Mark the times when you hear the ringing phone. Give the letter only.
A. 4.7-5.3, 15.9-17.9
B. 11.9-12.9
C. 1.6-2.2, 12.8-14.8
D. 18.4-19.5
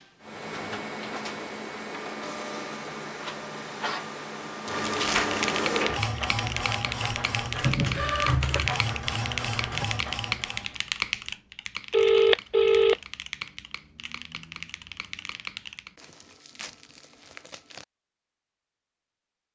B.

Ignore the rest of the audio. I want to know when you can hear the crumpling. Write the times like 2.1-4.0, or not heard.
4.7-5.3, 15.9-17.9.